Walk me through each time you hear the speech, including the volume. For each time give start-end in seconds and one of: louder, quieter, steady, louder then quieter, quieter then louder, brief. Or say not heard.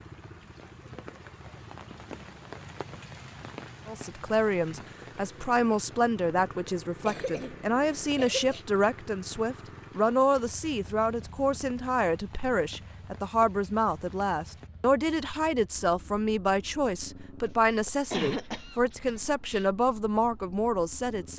3.9-21.3 steady.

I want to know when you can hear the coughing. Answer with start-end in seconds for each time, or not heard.
7.0-8.7, 17.9-19.6.